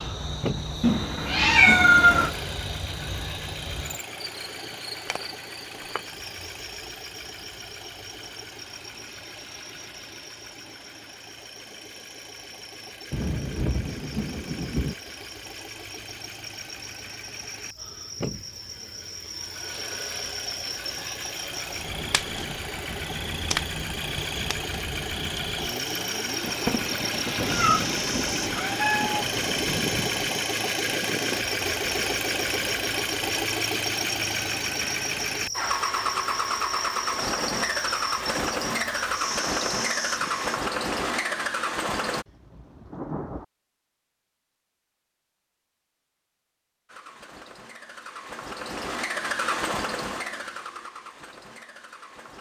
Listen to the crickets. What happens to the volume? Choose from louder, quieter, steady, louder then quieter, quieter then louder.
quieter then louder.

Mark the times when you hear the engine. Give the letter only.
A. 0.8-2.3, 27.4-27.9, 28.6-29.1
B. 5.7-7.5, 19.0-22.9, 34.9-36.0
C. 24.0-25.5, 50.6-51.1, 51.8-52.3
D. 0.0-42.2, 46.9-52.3
D.